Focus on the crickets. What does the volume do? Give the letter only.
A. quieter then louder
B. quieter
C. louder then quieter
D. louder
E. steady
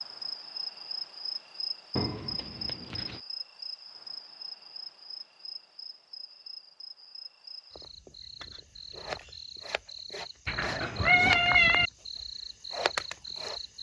A.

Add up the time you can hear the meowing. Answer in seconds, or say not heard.
3 s.